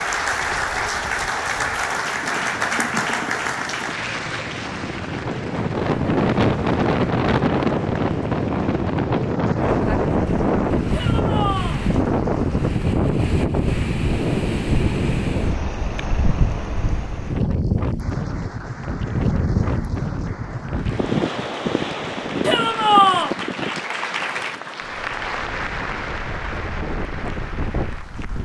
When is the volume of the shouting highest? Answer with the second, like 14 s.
23 s.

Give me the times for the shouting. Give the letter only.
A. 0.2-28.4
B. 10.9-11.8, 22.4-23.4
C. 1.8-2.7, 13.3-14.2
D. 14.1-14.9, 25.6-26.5
B.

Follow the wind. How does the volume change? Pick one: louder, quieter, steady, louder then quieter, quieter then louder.
louder then quieter.